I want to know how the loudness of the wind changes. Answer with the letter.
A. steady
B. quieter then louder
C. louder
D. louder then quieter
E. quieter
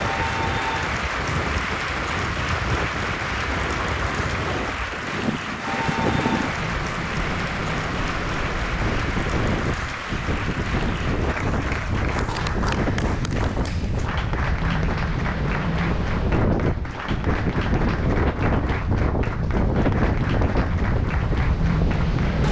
C.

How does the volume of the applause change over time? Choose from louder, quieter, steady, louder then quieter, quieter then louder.
quieter.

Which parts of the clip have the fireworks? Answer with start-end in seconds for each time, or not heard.
not heard.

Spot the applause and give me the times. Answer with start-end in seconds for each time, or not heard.
0.0-22.4.